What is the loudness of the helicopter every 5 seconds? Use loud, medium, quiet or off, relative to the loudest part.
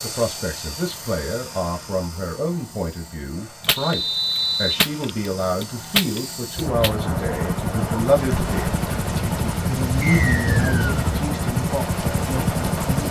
quiet, loud, loud.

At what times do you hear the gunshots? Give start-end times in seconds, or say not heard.
3.6-6.9.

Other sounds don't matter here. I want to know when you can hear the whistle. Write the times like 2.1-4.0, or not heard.
3.8-4.8, 10.0-11.0.